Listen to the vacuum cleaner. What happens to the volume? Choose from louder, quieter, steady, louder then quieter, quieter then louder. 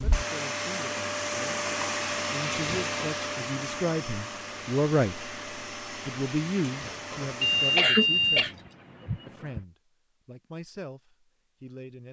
quieter.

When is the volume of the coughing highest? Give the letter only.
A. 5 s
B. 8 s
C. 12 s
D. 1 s
B.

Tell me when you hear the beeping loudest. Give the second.
8 s.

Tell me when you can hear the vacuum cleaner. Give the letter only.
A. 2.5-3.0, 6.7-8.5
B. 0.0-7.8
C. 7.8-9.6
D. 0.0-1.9
B.